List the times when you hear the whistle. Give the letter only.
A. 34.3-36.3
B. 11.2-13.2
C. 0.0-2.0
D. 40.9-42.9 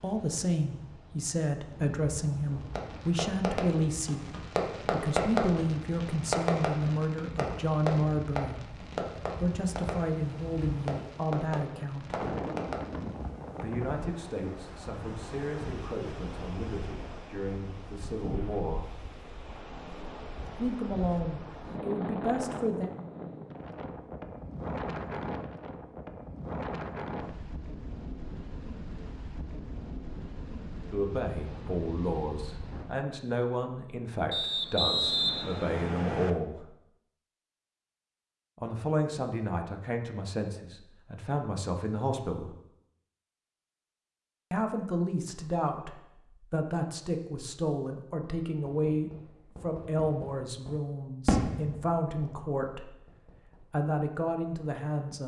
A.